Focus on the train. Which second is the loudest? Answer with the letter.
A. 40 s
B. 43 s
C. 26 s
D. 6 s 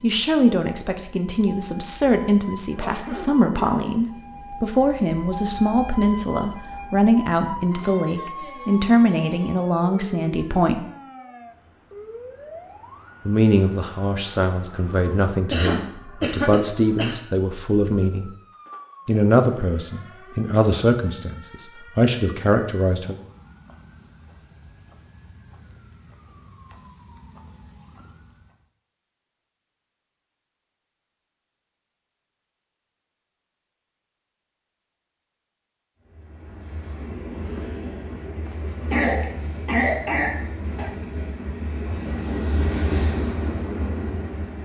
B.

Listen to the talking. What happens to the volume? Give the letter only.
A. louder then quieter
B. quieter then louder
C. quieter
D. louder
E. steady
E.